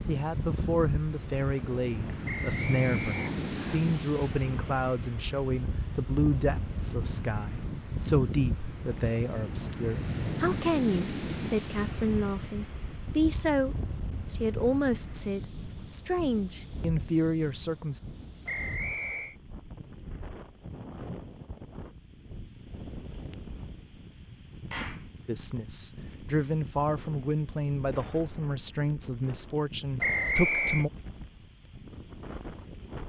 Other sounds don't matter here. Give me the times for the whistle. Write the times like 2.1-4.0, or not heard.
2.2-3.8, 18.4-19.4, 30.0-30.9.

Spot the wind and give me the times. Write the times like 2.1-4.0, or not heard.
0.0-33.0.